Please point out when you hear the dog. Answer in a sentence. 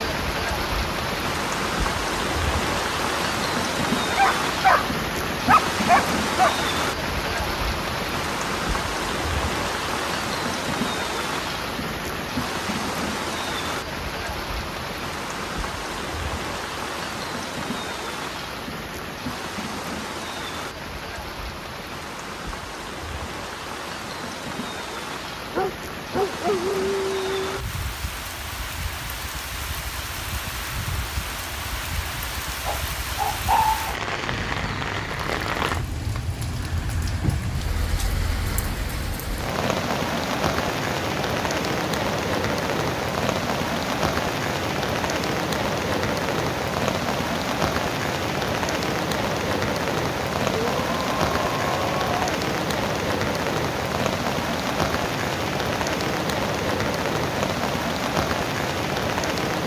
The dog can be heard from 4.1 to 6.6 s, from 25.5 to 27.6 s, from 32.6 to 34.0 s and from 50.5 to 52.3 s.